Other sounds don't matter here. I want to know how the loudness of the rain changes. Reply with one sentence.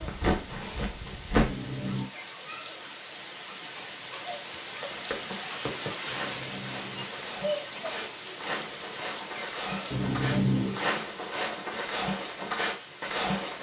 The volume of the rain goes up, then down.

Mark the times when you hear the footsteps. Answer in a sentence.
The footsteps can be heard from 0.0 to 1.6 s and from 4.8 to 13.5 s.